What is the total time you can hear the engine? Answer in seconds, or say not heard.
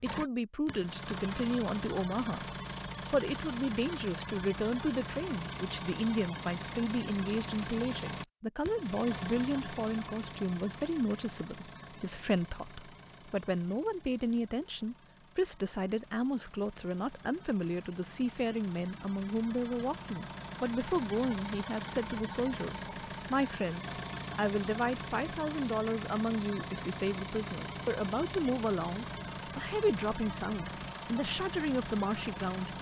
33 s.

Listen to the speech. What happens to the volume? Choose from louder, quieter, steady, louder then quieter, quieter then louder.
steady.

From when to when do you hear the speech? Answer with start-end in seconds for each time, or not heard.
0.0-32.7.